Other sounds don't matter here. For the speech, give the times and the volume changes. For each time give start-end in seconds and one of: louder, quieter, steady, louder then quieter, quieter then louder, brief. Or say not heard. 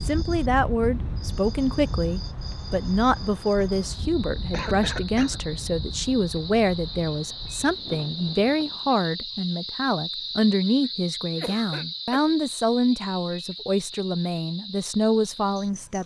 0.1-16.0 steady.